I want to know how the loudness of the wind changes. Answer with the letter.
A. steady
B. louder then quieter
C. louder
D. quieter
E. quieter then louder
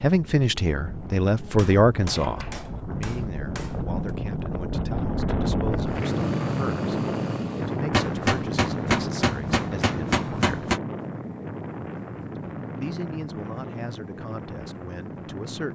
B.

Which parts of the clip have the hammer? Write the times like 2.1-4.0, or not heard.
1.6-4.2, 7.9-10.8.